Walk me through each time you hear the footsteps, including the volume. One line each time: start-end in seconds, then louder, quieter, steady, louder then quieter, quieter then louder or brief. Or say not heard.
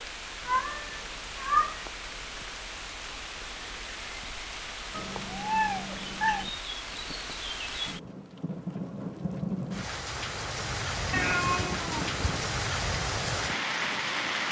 not heard.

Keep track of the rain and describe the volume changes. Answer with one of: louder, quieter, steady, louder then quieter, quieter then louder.
louder.